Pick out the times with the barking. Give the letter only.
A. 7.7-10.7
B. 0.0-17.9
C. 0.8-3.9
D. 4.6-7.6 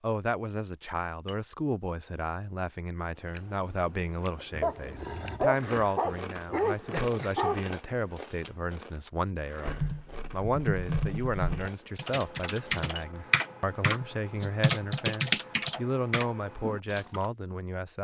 D.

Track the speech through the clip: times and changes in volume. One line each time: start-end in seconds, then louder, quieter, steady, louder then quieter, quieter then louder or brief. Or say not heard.
0.0-17.9 steady.